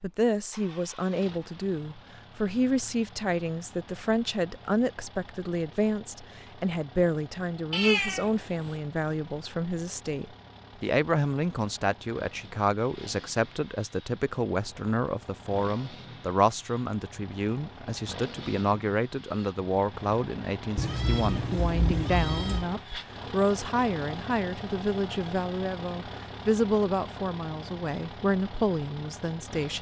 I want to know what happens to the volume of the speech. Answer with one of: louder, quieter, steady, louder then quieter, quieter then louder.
steady.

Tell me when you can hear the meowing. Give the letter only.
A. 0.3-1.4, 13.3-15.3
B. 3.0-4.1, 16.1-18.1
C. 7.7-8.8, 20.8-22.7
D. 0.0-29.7
C.